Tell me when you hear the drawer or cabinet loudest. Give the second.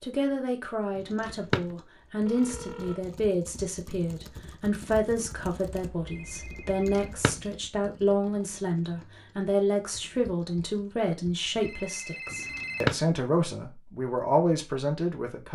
13 s.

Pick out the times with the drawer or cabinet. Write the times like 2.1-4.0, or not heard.
0.9-1.6, 6.9-7.3, 12.6-13.0.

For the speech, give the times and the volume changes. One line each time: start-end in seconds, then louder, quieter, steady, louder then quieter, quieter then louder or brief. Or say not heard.
0.0-15.4 steady.